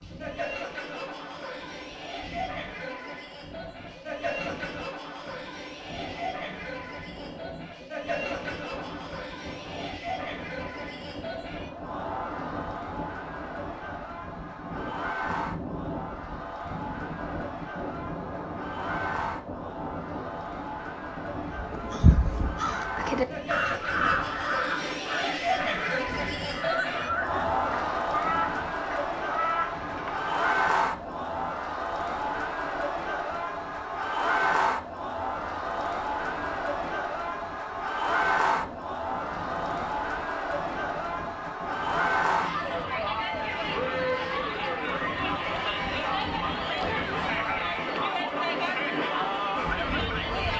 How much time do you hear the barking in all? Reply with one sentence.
The barking can't be heard in this clip.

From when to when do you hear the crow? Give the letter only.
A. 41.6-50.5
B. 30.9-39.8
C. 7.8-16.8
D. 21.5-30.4
D.